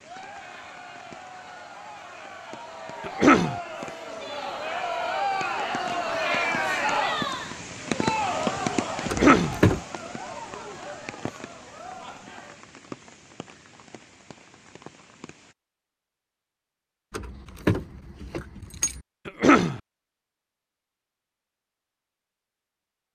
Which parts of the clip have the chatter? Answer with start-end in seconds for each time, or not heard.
0.0-12.7.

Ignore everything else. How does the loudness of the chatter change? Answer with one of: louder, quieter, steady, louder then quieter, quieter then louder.
louder then quieter.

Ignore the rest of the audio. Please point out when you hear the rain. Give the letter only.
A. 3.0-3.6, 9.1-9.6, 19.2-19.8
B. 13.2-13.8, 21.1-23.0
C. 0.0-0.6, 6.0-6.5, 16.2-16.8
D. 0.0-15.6
D.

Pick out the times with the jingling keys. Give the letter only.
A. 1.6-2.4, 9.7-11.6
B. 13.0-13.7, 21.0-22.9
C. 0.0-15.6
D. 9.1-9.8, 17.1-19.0
D.